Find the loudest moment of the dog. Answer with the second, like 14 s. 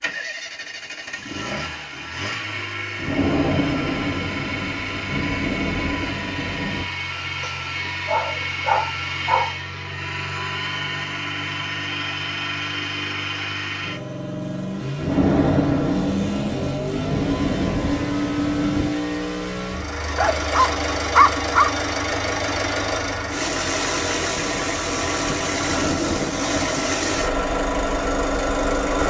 21 s.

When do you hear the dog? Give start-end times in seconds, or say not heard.
7.4-9.6, 20.1-21.7.